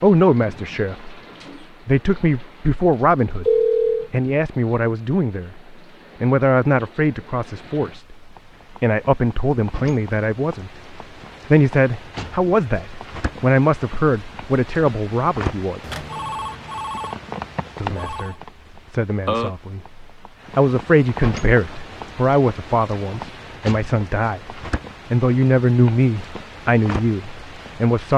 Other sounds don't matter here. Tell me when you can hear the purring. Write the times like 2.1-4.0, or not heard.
not heard.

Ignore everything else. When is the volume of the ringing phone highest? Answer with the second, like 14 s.
4 s.